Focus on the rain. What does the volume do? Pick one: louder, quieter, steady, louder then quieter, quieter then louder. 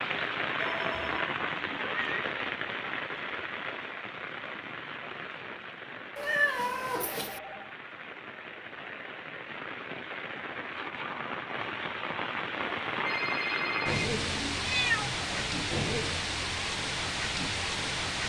quieter then louder.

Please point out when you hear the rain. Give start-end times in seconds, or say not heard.
0.0-18.2.